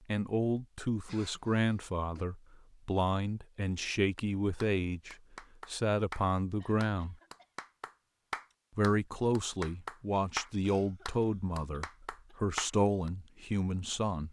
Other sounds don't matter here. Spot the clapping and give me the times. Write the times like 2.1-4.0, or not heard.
4.0-13.1.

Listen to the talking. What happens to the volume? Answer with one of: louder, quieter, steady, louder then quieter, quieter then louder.
steady.